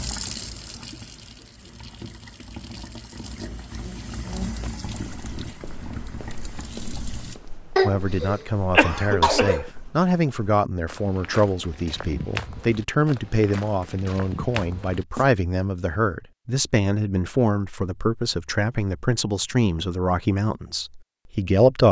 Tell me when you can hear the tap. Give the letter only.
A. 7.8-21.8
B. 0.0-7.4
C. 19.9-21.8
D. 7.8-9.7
B.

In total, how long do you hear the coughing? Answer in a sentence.
The coughing can be heard for 2 seconds in total.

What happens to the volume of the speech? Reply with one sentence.
The volume of the speech stays about the same.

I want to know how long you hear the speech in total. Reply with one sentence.
The speech can be heard for 14 seconds in total.